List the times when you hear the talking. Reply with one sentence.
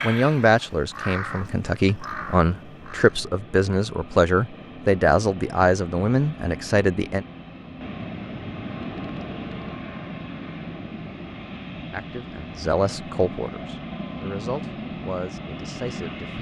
The talking can be heard from 0.0 to 7.2 s and from 11.9 to 16.3 s.